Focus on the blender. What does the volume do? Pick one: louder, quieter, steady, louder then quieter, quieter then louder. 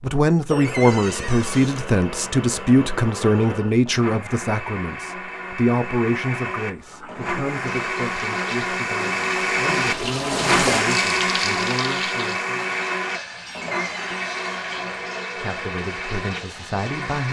louder then quieter.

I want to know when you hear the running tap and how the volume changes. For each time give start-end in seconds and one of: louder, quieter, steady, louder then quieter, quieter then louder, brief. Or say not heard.
6.8-17.2 louder then quieter.